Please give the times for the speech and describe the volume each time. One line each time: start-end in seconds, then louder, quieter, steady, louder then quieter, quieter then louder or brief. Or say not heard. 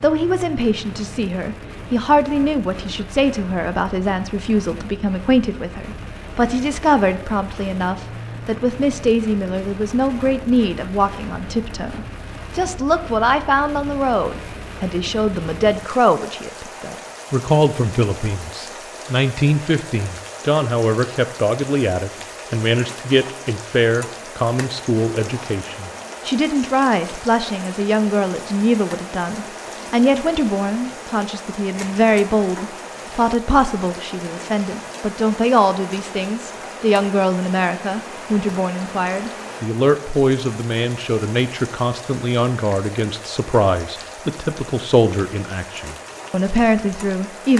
0.0-47.5 steady.